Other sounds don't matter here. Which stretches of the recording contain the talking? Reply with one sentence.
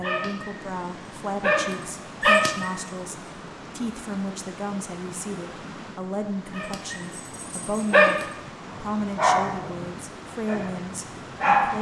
You can hear the talking from 0.0 to 11.7 s.